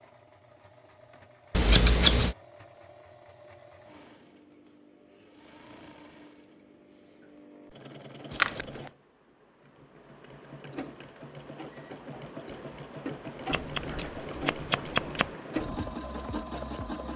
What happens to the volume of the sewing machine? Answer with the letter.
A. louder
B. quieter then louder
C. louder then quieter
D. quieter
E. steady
A.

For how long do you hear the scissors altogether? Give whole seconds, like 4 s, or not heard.
3 s.